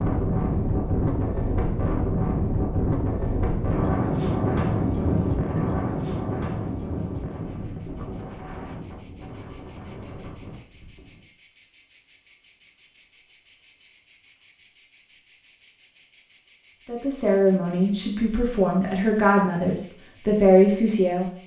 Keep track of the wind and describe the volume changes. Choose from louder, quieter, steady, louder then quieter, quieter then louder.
quieter.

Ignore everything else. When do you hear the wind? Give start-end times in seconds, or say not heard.
0.0-11.3.